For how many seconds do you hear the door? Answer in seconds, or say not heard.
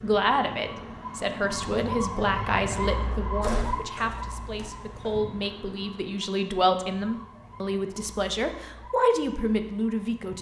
2 s.